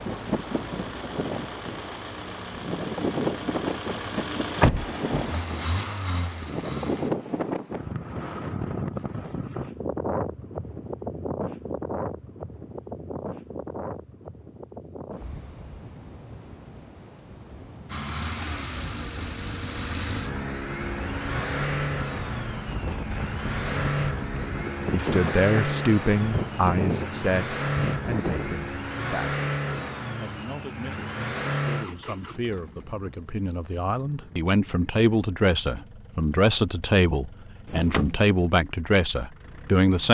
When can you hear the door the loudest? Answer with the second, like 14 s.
5 s.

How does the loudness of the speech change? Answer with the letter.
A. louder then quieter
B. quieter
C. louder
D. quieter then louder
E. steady
D.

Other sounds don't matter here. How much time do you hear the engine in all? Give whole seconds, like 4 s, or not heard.
29 s.